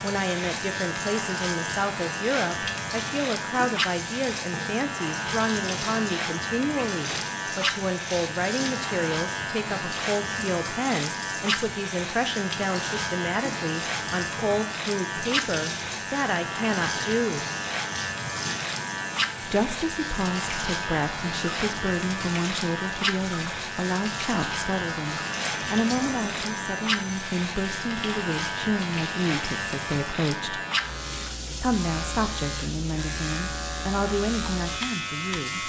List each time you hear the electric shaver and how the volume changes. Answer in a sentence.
The electric shaver can be heard from 0.0 to 35.6 s, at a steady volume.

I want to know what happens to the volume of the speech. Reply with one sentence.
The loudness of the speech stays about the same.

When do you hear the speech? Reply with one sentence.
You can hear the speech from 0.0 to 17.4 s, from 19.4 to 30.6 s and from 31.6 to 35.6 s.